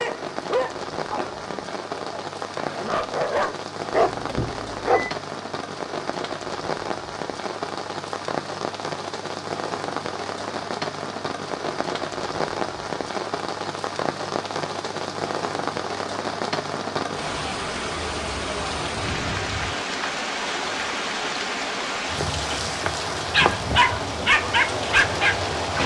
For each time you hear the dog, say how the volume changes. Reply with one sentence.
The dog can be heard from 0.0 to 5.1 s, getting quieter then louder; and briefly from 23.3 to 25.8 s.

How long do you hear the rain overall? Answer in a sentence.
The rain can be heard for 26 seconds in total.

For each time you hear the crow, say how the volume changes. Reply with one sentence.
You can't hear the crow here.